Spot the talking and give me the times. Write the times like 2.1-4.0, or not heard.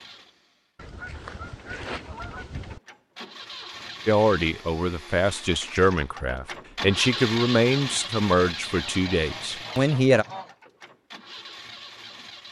4.0-10.2.